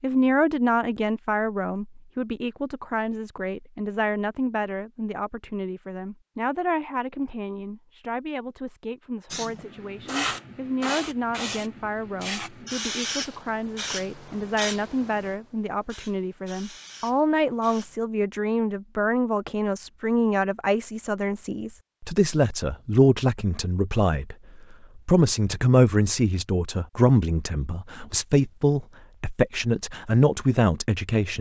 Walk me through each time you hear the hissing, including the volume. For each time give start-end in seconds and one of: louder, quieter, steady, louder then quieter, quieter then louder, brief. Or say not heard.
9.3-17.9 quieter.